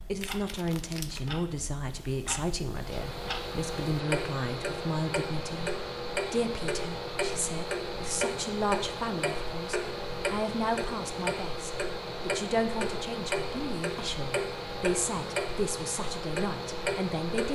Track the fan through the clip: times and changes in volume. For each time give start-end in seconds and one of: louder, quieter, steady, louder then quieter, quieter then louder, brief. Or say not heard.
2.6-17.5 steady.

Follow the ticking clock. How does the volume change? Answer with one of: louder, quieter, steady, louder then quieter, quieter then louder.
louder.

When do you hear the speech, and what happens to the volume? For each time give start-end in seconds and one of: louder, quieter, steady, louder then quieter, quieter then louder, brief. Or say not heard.
0.1-17.5 steady.